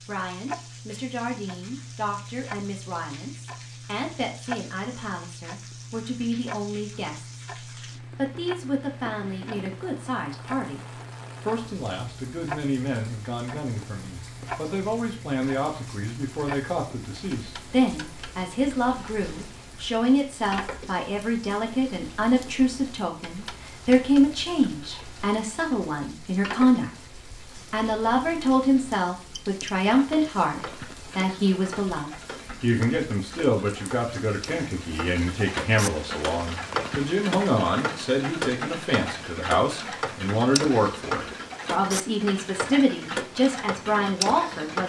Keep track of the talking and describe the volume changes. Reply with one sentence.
The loudness of the talking goes up.